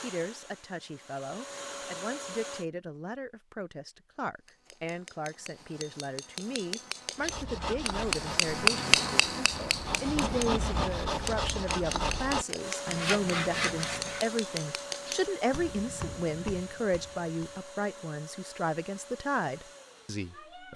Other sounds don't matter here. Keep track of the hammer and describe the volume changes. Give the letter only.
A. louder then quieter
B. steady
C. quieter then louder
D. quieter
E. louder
A.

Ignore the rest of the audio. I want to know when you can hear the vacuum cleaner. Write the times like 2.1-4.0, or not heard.
0.0-2.6, 12.6-20.7.